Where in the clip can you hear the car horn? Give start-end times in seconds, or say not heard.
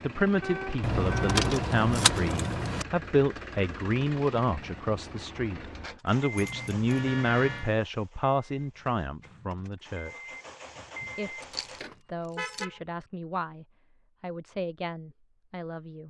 0.4-1.4, 6.8-7.8, 11.4-12.8.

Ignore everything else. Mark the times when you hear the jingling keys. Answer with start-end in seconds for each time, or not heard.
0.8-2.9, 6.3-7.8, 11.4-12.7.